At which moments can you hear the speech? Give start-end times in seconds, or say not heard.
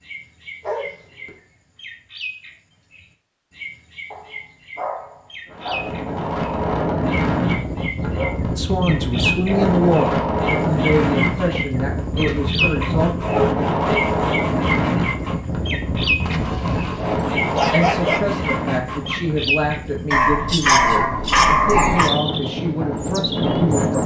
8.6-13.1, 17.7-24.0.